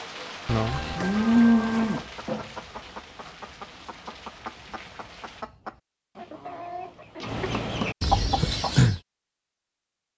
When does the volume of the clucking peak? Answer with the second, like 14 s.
9 s.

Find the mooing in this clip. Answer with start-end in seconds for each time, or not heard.
0.5-2.0.